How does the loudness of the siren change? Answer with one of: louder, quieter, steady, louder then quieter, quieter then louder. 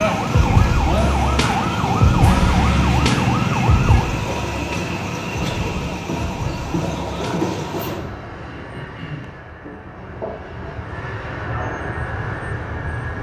quieter.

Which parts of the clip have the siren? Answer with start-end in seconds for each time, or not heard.
0.0-7.5.